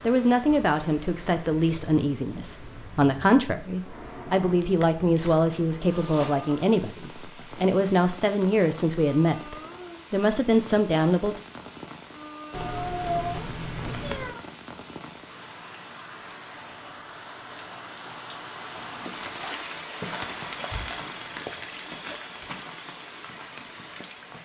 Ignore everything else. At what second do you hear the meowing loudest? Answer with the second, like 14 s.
13 s.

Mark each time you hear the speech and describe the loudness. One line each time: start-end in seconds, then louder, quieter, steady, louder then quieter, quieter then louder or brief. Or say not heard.
0.0-11.4 steady.